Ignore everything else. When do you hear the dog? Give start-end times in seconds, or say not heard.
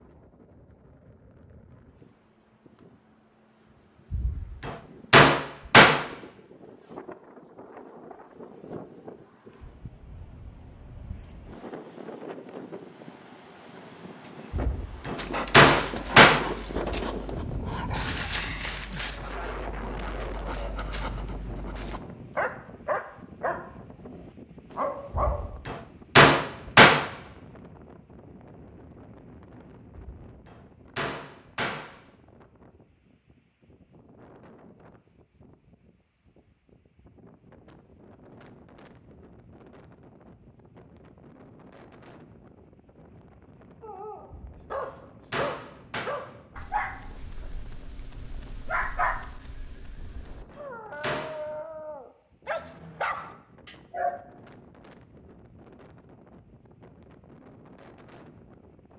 15.2-25.6, 43.8-54.2.